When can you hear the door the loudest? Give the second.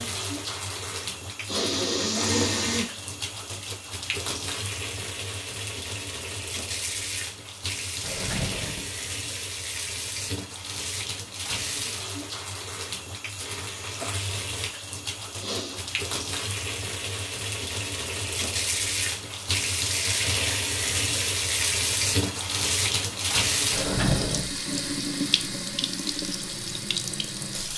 24 s.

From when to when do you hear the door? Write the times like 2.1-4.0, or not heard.
8.0-8.9, 23.7-24.4.